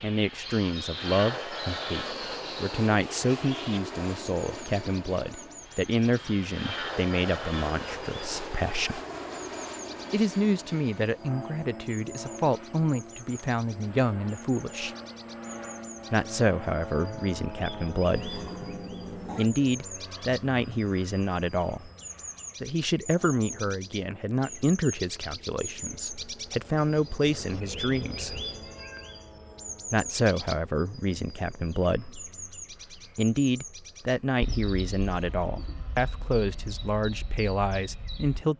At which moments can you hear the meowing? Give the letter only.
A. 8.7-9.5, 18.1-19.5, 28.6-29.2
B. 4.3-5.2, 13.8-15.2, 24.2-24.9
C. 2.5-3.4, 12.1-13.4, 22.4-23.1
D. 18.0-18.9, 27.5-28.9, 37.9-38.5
A.